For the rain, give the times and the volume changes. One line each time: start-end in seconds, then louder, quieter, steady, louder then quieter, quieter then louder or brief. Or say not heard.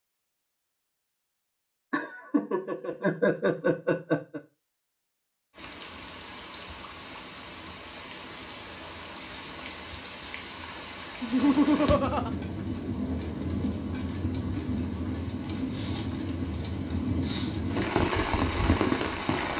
5.5-19.5 louder.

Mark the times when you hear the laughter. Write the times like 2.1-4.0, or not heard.
1.9-4.4, 11.2-12.3.